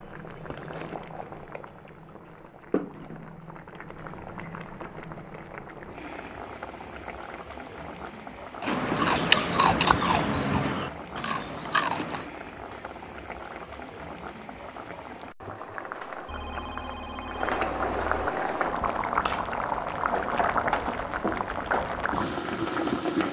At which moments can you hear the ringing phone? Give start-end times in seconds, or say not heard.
16.2-18.1.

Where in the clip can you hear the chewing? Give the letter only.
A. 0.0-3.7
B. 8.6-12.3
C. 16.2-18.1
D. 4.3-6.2
B.